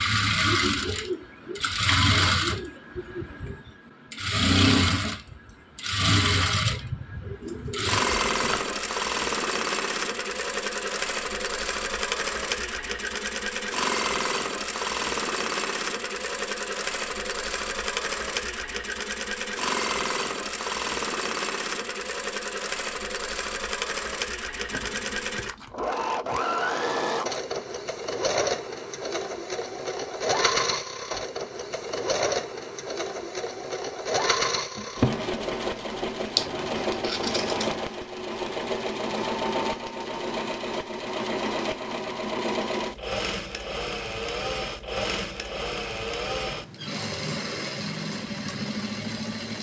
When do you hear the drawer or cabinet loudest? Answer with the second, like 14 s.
35 s.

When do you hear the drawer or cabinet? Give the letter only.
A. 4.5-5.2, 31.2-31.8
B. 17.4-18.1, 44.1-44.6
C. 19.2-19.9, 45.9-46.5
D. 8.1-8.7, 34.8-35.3
D.